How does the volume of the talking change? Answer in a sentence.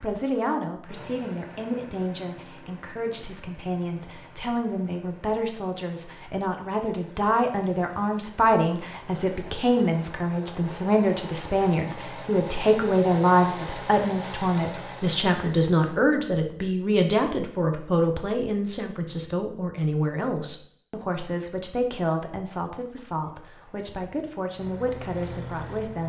The volume of the talking goes up, then down.